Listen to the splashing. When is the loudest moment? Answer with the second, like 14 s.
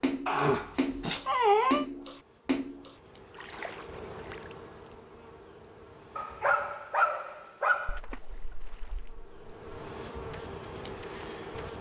2 s.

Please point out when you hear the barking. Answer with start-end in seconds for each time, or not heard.
0.2-1.9, 6.2-8.0.